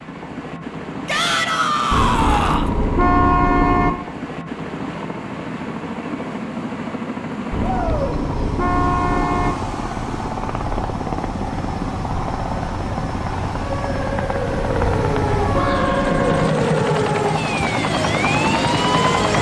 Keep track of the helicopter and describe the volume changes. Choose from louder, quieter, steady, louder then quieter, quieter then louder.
louder.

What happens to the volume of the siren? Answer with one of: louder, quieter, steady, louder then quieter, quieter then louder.
louder.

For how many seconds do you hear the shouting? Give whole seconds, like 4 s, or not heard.
3 s.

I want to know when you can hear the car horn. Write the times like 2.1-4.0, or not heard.
1.9-3.9, 7.5-9.6, 14.4-16.5.